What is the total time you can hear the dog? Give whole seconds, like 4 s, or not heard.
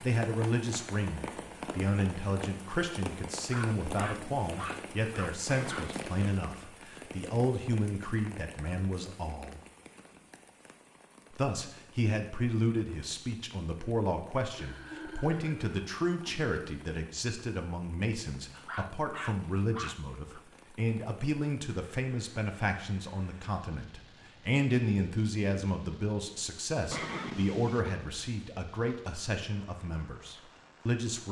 4 s.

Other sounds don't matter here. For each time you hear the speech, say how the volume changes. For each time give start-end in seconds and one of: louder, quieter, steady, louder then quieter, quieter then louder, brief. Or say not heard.
0.0-9.6 steady
11.3-31.2 steady.